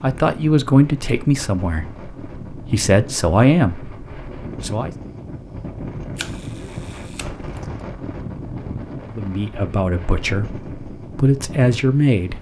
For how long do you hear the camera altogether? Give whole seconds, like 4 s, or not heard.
2 s.